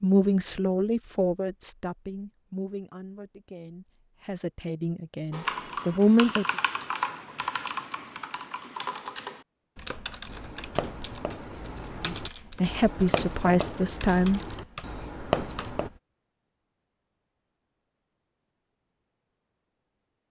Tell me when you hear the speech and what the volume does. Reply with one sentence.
The speech can be heard from 0.0 to 6.5 s, getting quieter then louder; and briefly from 12.1 to 14.4 s.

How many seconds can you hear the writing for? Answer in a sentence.
You can hear the writing for 6 seconds altogether.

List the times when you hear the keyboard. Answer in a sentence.
The keyboard can be heard from 5.3 to 16.0 s.